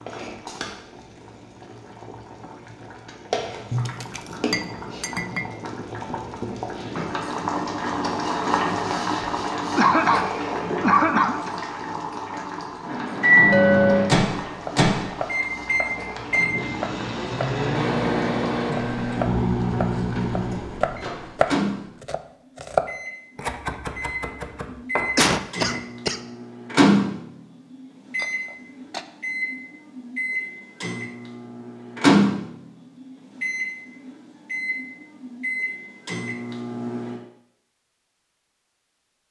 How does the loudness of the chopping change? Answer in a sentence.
The loudness of the chopping goes up, then down.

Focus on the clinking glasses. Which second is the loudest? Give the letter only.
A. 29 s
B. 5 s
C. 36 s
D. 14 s
D.